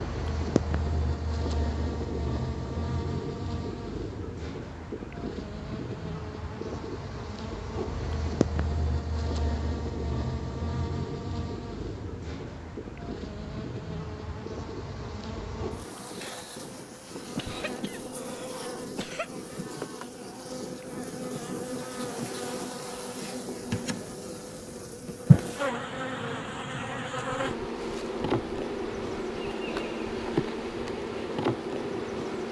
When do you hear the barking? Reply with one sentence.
The barking can't be heard in this clip.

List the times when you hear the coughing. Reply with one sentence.
The coughing can be heard from 17.4 to 19.3 s.